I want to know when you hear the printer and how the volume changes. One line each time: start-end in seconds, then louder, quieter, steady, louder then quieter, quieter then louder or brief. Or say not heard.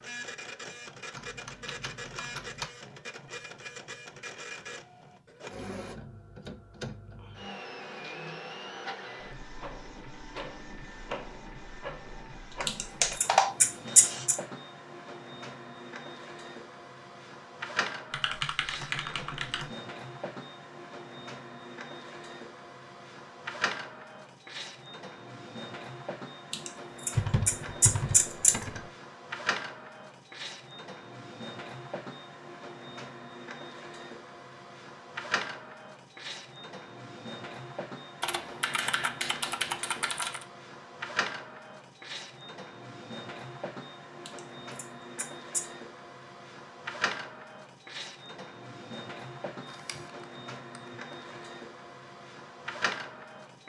0.0-53.6 steady.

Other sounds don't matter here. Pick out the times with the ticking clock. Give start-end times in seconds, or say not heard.
not heard.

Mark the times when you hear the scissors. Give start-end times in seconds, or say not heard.
12.7-14.3, 26.5-28.6, 44.2-45.6.